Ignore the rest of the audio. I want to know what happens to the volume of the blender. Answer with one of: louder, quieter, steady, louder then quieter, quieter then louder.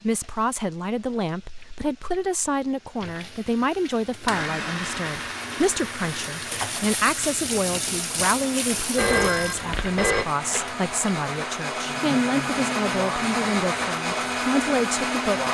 quieter then louder.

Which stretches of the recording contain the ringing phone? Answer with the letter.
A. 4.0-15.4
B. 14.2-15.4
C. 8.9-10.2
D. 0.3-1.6
C.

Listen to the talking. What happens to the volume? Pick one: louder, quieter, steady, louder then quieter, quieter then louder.
steady.